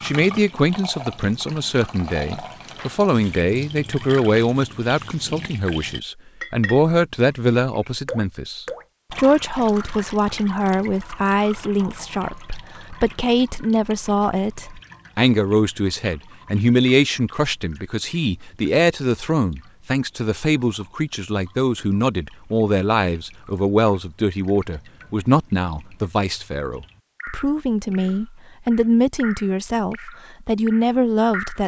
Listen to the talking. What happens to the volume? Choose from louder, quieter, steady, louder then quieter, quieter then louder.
steady.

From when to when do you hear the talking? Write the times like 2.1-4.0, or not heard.
0.0-31.6.